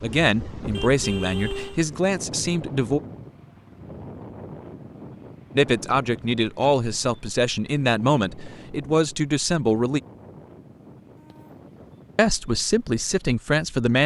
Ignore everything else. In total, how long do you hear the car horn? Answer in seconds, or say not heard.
2 s.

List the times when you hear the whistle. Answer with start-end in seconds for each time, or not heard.
not heard.